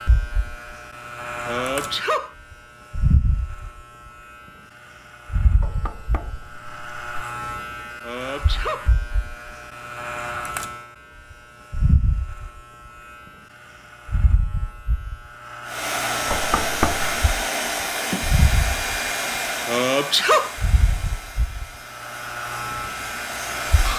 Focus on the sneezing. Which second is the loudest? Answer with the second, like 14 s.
20 s.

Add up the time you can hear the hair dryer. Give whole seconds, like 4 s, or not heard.
8 s.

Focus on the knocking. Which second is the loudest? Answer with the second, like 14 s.
17 s.